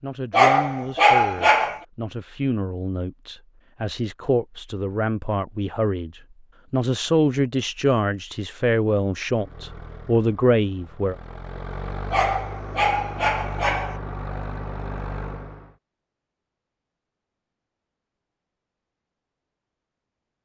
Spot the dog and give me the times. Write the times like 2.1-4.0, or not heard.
0.3-1.8, 12.1-13.9.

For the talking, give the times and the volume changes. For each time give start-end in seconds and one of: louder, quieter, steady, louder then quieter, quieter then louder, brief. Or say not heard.
0.0-11.2 louder.